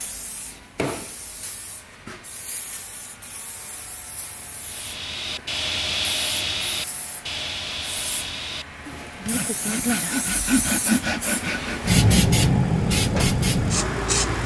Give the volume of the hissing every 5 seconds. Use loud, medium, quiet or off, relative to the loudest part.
quiet, quiet, loud.